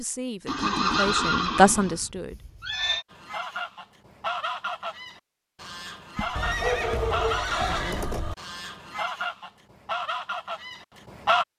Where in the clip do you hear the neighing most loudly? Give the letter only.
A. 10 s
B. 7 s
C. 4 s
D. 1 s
D.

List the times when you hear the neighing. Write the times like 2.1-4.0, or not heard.
0.5-3.0, 6.3-8.3.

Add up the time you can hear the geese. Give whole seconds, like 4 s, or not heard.
8 s.